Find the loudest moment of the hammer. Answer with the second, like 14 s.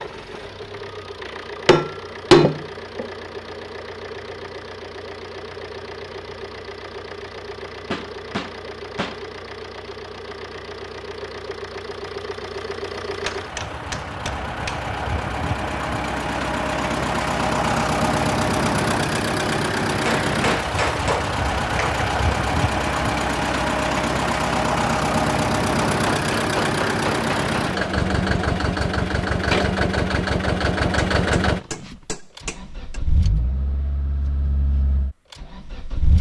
2 s.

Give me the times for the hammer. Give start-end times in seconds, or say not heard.
1.6-3.0, 7.9-9.2, 13.2-14.8, 20.1-22.1, 25.9-27.6, 30.9-33.0.